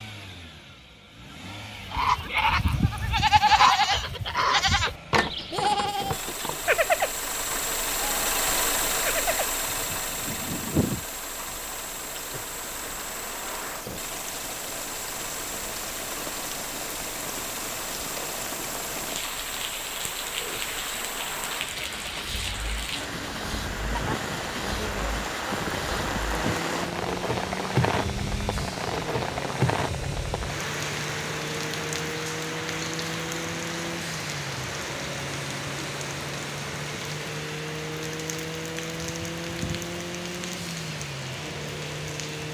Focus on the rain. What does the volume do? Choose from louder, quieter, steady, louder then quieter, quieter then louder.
louder then quieter.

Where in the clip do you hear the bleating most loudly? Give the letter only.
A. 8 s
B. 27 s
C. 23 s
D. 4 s
D.